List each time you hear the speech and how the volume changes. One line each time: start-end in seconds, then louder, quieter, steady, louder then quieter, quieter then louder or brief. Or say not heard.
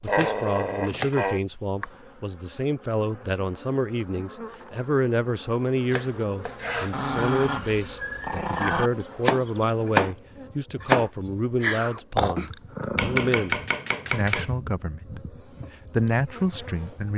0.0-17.1 steady.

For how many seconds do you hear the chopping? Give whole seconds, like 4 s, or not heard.
7 s.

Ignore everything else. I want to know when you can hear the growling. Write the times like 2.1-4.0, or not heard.
0.1-1.4, 6.9-8.9, 11.6-13.3.